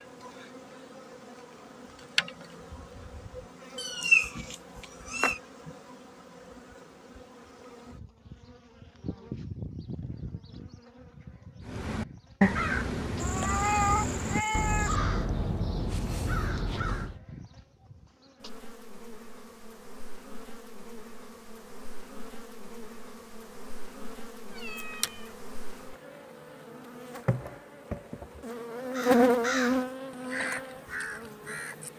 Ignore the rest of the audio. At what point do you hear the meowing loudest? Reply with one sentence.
The loudest moment of the meowing is at 4 seconds.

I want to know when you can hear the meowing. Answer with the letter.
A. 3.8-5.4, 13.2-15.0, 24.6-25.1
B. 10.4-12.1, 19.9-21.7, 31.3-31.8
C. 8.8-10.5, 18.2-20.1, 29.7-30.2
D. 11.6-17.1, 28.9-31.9
A.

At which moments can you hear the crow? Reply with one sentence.
The crow can be heard from 11.6 to 17.1 s and from 28.9 to 31.9 s.